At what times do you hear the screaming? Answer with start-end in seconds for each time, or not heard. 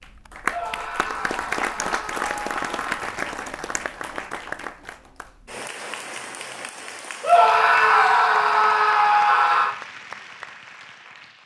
0.5-3.0, 7.2-9.8.